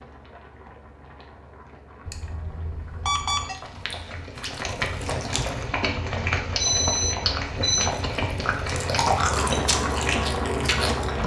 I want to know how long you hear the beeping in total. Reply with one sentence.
You can hear the beeping for 3 seconds altogether.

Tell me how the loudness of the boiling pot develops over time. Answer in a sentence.
The volume of the boiling pot goes up.